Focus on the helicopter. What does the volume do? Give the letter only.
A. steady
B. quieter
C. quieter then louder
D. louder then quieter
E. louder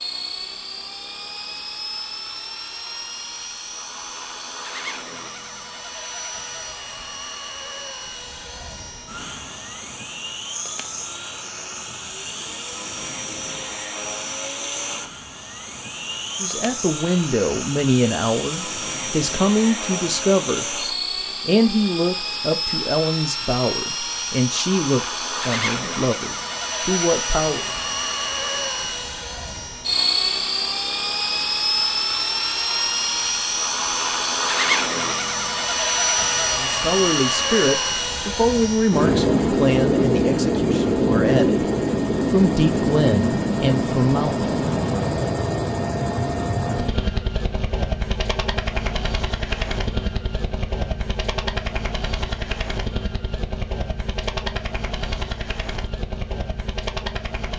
D.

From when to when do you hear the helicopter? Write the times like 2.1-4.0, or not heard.
0.0-57.5.